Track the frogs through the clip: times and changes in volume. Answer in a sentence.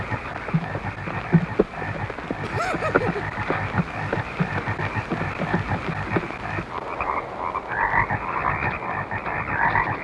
The frogs can be heard from 0.0 to 10.0 s, at a steady volume.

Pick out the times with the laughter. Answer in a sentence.
You can hear the laughter from 2.4 to 3.2 s.